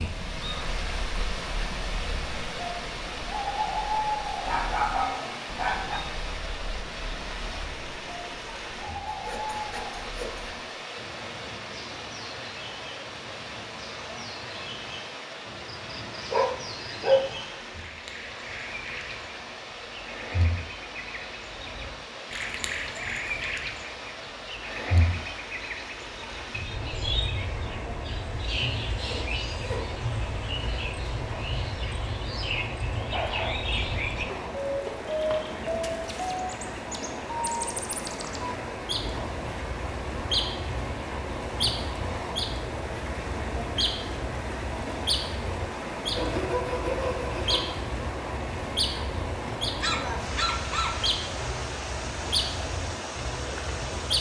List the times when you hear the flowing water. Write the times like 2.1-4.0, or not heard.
0.0-54.1.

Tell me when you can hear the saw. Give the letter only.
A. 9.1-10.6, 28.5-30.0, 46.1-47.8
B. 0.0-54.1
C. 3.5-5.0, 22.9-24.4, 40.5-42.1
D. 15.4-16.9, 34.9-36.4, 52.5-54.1
A.